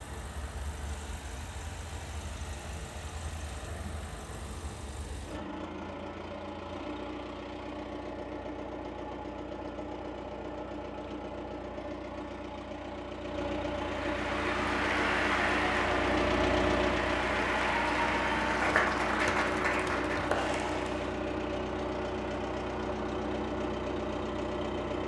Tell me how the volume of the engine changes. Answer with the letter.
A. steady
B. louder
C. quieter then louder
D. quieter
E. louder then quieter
B.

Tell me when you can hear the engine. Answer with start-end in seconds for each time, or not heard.
0.0-25.0.